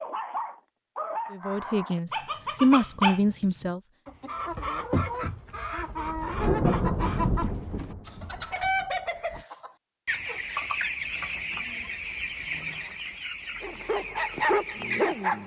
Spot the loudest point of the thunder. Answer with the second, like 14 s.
7 s.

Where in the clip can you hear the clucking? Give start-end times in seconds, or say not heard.
4.0-15.4.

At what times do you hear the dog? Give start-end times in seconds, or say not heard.
0.0-3.7, 13.6-15.4.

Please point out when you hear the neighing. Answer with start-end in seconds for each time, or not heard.
not heard.